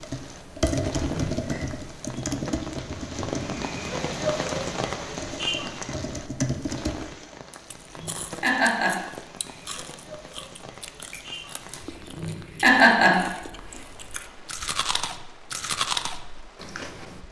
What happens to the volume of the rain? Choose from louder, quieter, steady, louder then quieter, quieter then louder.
louder then quieter.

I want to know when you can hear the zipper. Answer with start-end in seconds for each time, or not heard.
not heard.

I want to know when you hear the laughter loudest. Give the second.
13 s.